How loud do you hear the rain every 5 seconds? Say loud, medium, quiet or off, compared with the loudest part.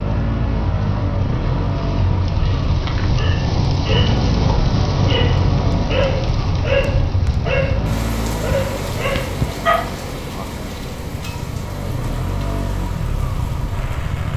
loud, loud, medium.